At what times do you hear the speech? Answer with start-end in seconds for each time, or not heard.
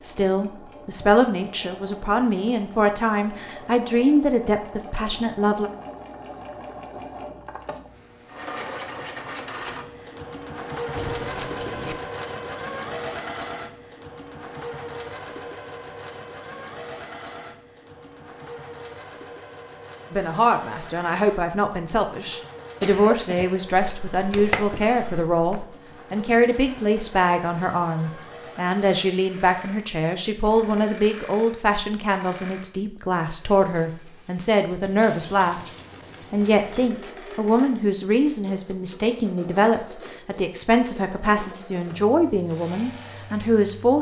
0.0-5.7, 20.1-35.6, 36.3-43.9.